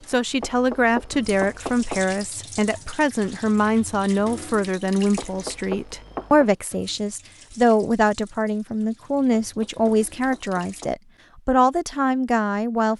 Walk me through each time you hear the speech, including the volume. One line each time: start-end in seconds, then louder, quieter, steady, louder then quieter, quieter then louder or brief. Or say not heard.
0.1-12.9 steady.